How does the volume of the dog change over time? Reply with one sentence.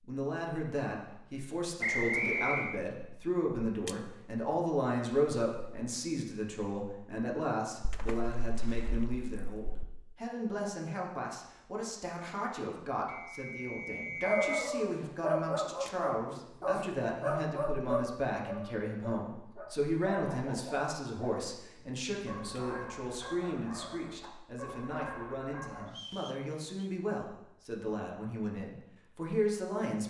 The volume of the dog goes down.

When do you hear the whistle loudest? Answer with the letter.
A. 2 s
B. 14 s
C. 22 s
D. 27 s
A.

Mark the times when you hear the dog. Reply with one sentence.
The dog can be heard from 14.2 to 25.9 s.